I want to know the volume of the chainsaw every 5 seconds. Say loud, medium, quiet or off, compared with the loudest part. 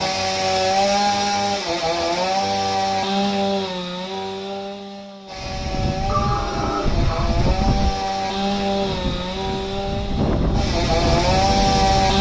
loud, medium, loud.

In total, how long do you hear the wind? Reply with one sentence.
You can hear the wind for 7 seconds altogether.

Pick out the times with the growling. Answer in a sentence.
The growling can be heard from 6.0 to 7.3 s.